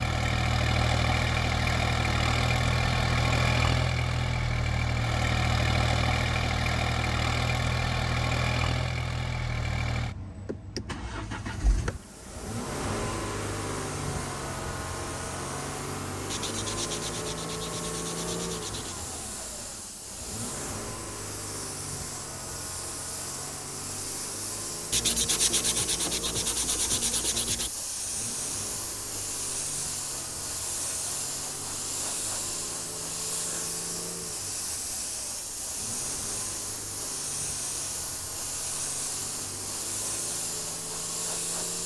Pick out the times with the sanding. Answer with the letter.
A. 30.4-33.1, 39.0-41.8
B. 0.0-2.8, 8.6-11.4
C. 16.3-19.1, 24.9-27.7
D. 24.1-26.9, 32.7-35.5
C.